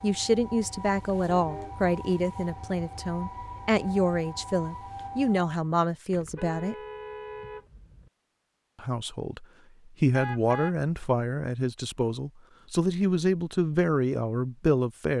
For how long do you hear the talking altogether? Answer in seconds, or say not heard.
13 s.